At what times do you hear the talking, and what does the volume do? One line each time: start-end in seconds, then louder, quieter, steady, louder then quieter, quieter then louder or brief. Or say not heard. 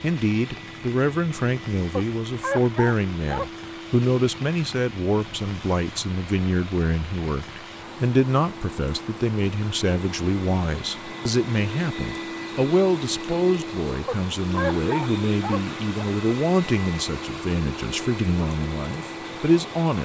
0.0-20.0 steady.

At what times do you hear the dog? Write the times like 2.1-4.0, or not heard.
1.9-3.5, 14.1-16.1.